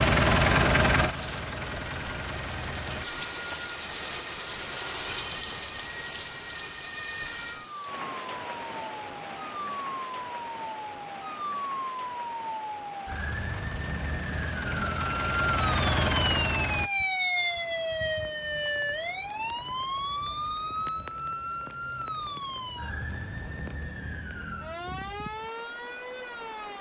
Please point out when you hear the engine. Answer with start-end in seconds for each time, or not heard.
0.0-3.0, 13.1-16.9.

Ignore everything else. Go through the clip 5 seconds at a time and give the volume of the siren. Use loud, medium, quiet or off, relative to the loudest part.
quiet, medium, medium, loud, medium, medium.